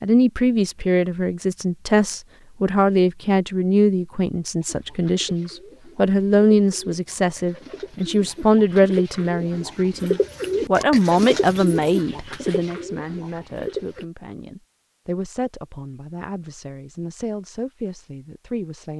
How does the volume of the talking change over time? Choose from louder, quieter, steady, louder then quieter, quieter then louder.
quieter.